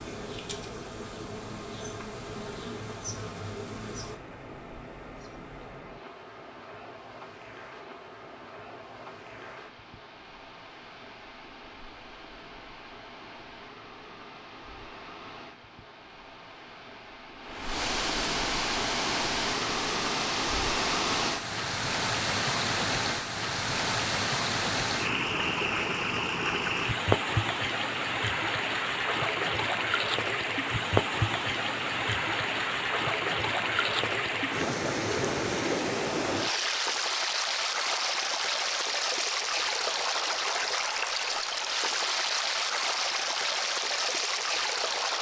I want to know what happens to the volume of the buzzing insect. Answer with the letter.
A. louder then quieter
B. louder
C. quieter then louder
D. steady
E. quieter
E.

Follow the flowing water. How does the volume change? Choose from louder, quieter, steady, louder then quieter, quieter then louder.
louder.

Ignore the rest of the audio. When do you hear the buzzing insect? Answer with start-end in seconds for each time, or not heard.
0.0-5.7.